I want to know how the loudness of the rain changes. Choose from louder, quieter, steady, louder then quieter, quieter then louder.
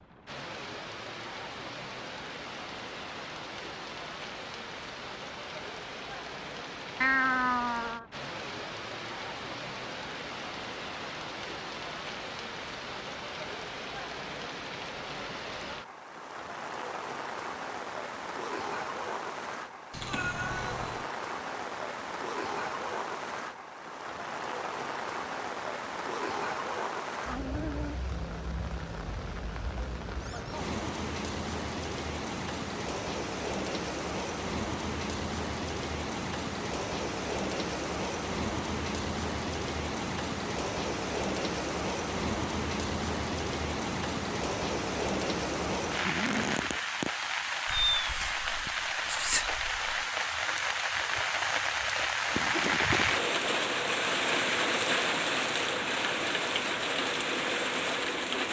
louder.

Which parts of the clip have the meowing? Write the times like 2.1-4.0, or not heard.
7.0-8.1, 19.9-21.1, 47.6-50.0.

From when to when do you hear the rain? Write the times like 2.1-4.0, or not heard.
0.0-58.4.